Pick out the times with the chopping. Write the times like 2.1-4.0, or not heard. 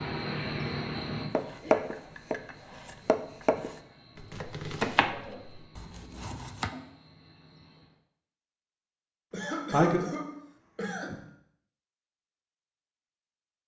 1.3-6.7.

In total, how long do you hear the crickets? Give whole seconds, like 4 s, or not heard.
8 s.